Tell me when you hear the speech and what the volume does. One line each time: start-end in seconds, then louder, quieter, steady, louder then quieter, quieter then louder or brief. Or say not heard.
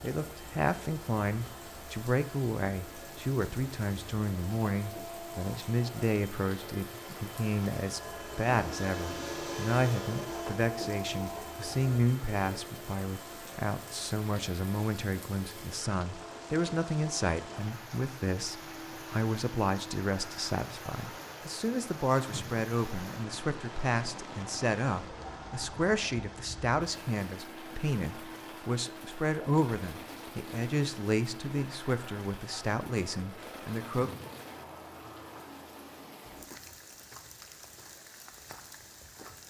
0.0-34.1 steady.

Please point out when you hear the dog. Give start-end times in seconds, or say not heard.
not heard.